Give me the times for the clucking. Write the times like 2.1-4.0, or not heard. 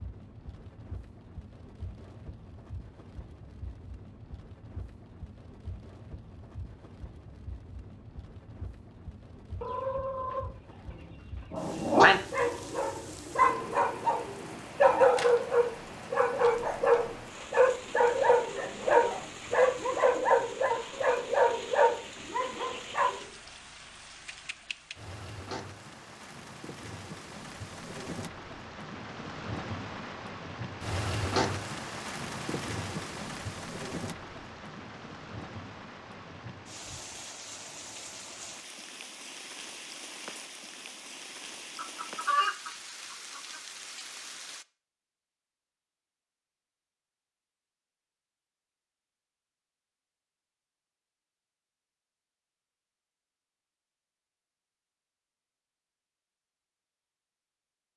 9.6-11.4, 41.8-43.6.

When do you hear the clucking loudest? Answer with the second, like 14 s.
42 s.